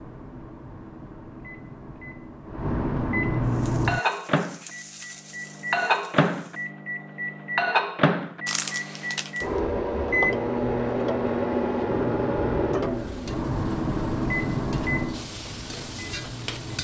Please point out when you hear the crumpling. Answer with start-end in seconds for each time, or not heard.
8.4-9.4.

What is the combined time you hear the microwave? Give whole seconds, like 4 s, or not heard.
17 s.